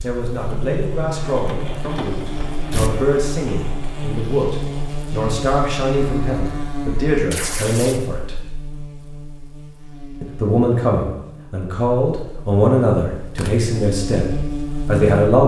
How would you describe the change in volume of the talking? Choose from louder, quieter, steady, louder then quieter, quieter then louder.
louder.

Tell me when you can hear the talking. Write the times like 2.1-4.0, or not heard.
0.0-8.4, 10.2-15.4.